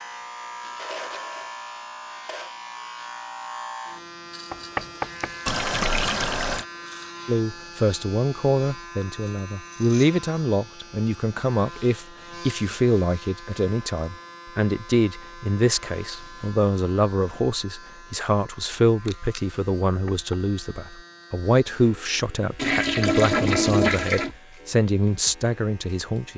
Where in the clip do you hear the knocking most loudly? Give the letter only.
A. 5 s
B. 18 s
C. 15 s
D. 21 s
A.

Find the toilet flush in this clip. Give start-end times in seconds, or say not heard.
5.5-6.7, 22.6-24.3.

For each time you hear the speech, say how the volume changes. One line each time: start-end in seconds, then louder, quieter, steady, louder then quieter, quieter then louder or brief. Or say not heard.
7.2-26.3 steady.